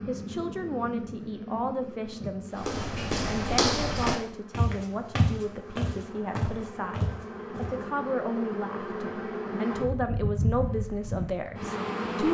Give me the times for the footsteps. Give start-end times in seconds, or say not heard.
2.5-7.8.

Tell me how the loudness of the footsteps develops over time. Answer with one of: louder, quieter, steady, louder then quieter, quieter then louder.
quieter.